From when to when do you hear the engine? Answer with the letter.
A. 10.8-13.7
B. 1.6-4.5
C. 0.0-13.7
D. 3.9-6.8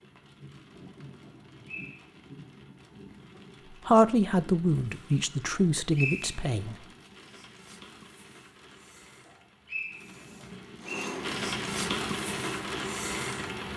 A.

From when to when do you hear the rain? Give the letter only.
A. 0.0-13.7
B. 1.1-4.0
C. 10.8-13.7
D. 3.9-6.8
A.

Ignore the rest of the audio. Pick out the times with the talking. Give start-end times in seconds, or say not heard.
3.9-6.8.